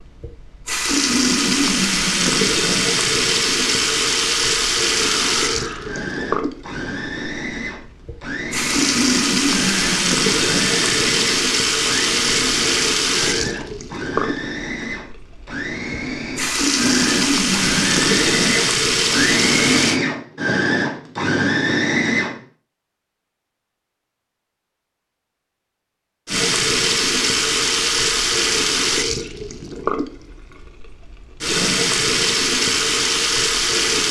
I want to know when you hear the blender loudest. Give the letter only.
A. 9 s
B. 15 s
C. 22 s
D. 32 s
C.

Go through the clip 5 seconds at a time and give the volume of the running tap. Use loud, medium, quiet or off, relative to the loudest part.
loud, loud, loud, loud, off, loud, loud.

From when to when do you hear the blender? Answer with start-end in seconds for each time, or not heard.
5.0-22.4.